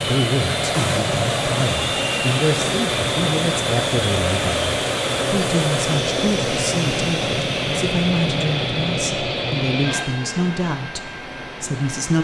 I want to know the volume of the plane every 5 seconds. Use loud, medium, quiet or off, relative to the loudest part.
loud, loud, medium.